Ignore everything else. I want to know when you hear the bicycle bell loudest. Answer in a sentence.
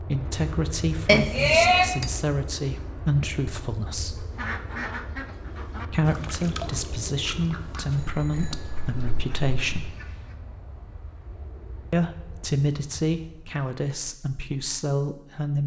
The loudest moment of the bicycle bell is at 2 seconds.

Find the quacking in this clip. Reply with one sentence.
You can hear the quacking from 4.2 to 10.3 s.